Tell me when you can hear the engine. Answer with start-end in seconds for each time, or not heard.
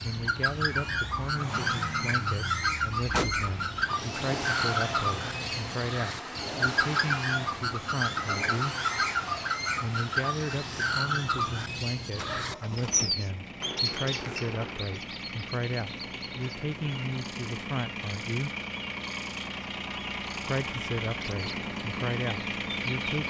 0.0-23.2.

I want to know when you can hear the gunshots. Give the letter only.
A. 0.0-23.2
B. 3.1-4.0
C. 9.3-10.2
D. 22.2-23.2
B.